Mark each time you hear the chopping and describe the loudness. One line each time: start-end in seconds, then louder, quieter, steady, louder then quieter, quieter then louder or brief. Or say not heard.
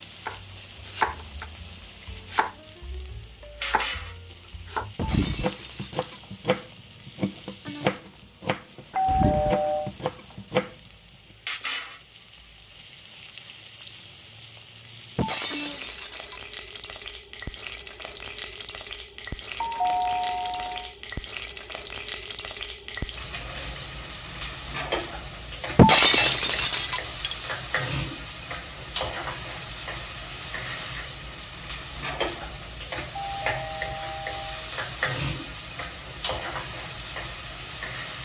0.2-10.8 quieter then louder.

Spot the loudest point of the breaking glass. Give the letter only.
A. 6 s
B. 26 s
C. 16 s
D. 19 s
B.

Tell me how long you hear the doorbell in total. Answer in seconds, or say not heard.
4 s.